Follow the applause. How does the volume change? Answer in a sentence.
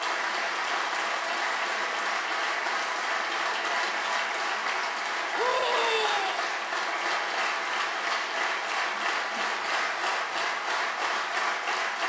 The loudness of the applause stays about the same.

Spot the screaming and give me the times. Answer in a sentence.
You can hear the screaming from 5.3 to 6.5 s.